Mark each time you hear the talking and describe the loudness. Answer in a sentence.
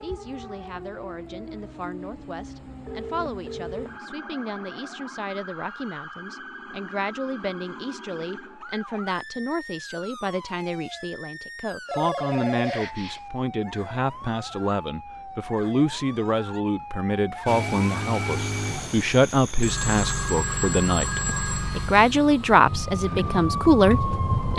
You can hear the talking from 0.0 to 24.5 s, getting louder.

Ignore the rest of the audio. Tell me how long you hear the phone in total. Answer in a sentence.
You can hear the phone for 5 seconds altogether.